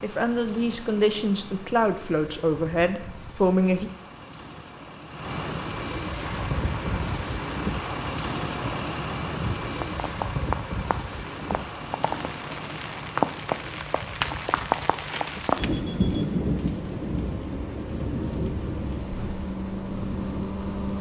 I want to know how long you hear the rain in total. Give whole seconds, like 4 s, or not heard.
15 s.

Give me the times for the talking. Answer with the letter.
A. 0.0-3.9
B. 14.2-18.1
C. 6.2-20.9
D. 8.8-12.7
A.